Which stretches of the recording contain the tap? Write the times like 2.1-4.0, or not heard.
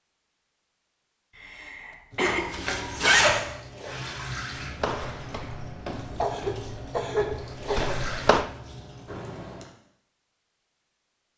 2.1-9.4.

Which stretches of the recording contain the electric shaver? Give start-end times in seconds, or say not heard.
not heard.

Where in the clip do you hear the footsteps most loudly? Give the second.
8 s.